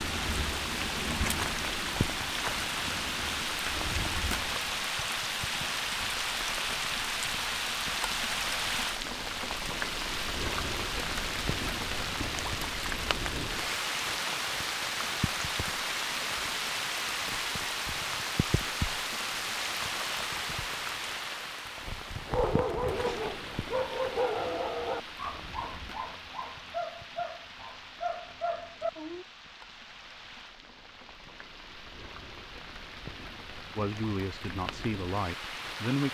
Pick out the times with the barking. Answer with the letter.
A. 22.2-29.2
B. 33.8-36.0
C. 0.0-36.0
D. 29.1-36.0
A.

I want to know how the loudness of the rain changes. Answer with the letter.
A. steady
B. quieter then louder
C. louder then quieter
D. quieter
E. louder
D.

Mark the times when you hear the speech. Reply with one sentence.
The speech can be heard from 33.8 to 36.0 s.